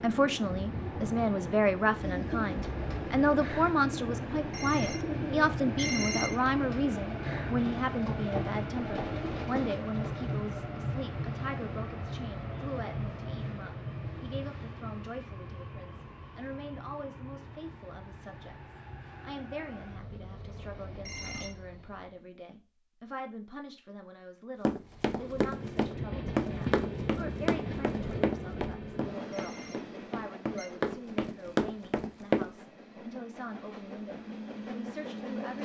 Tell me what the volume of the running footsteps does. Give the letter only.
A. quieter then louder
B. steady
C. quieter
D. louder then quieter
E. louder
A.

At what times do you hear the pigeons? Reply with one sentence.
The pigeons can be heard from 2.0 to 10.4 s.